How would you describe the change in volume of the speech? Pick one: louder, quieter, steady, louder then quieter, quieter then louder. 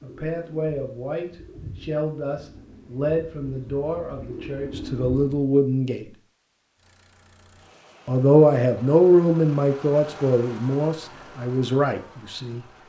louder then quieter.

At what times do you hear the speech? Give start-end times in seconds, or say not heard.
0.0-6.0, 8.1-12.6.